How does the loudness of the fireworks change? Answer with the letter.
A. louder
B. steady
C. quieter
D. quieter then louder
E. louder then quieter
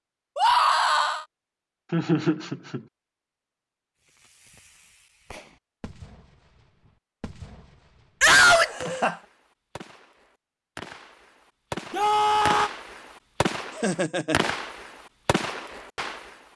A.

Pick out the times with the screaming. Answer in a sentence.
The screaming can be heard from 0.3 to 1.2 s, from 8.2 to 8.7 s and from 11.9 to 12.7 s.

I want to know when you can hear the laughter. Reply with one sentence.
You can hear the laughter from 1.9 to 2.9 s, from 8.5 to 9.2 s and from 13.7 to 14.5 s.